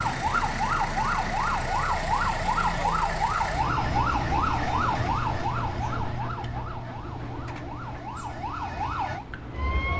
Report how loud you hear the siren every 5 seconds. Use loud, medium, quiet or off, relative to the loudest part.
loud, medium.